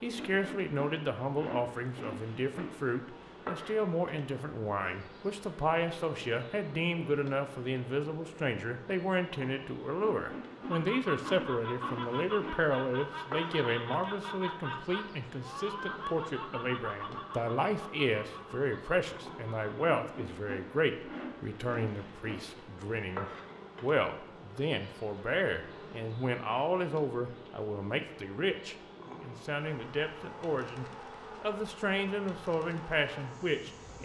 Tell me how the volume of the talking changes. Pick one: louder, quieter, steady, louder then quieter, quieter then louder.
steady.